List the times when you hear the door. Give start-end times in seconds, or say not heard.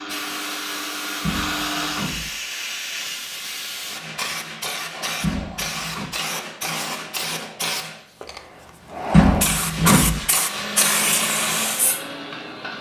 1.2-2.3, 5.2-6.2, 9.1-10.2.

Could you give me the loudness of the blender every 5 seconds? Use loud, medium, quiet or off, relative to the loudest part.
loud, off, loud.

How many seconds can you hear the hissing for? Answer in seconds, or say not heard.
13 s.